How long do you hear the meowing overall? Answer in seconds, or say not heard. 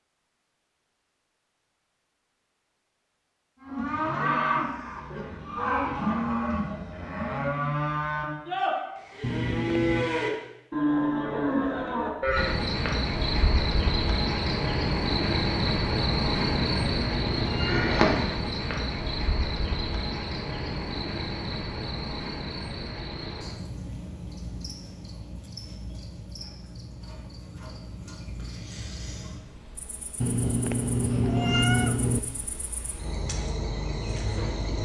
5 s.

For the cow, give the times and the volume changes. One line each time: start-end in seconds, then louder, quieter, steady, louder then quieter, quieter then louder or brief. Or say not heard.
3.6-12.6 steady.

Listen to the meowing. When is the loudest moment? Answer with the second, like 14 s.
32 s.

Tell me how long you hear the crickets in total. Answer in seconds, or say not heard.
22 s.